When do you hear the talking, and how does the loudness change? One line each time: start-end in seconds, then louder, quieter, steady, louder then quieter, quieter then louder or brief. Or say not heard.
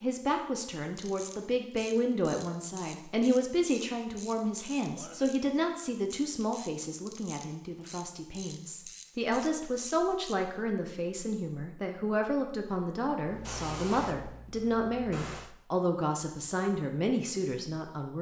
0.0-18.1 steady.